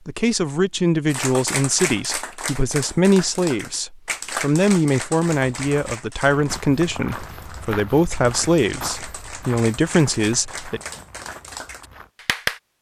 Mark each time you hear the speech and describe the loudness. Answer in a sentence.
You can hear the speech from 0.1 to 10.8 s, at a steady volume.